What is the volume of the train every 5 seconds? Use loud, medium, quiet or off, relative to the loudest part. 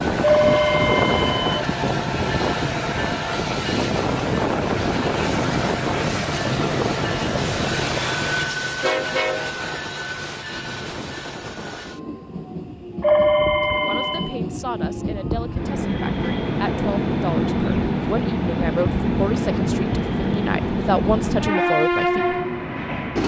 loud, loud, medium, loud, loud.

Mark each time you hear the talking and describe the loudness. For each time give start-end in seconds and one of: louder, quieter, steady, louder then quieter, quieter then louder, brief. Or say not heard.
13.8-22.4 louder.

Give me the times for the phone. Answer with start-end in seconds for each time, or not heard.
0.2-1.6, 13.0-14.3.